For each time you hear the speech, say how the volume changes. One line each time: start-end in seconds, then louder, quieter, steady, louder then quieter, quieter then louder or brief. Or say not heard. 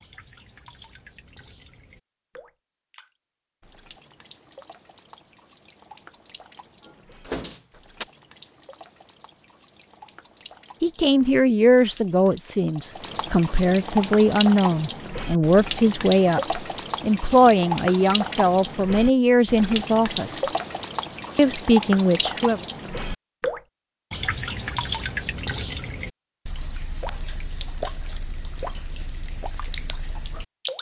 10.8-20.4 steady
21.4-22.6 brief.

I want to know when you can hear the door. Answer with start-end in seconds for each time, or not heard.
6.8-8.1.